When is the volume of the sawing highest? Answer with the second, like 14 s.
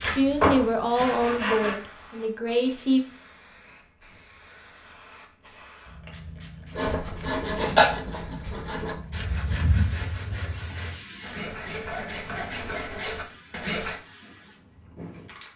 8 s.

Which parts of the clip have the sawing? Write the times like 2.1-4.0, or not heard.
0.0-1.8, 6.8-14.0.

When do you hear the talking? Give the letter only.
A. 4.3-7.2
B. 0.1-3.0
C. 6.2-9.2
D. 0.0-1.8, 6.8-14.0
B.